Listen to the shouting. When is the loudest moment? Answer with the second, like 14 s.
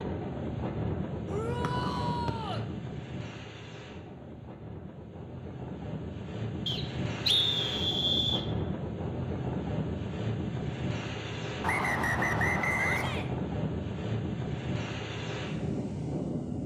2 s.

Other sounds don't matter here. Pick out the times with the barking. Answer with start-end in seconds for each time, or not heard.
not heard.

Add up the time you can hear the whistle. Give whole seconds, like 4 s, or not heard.
4 s.